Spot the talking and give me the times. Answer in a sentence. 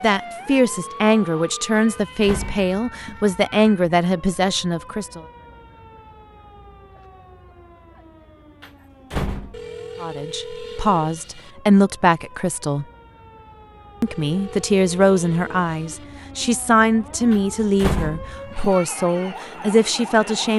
You can hear the talking from 0.0 to 5.2 s, from 10.0 to 12.8 s and from 14.0 to 20.5 s.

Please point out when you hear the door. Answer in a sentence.
The door can be heard from 1.8 to 3.2 s, from 8.6 to 9.7 s and from 17.3 to 18.8 s.